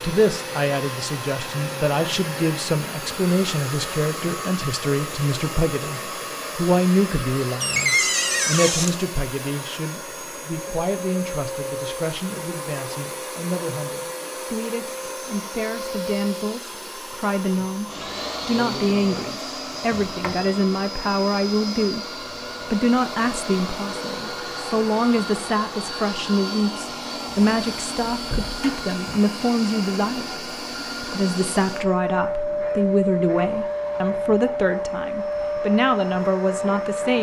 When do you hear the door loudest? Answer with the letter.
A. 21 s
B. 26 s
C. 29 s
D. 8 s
D.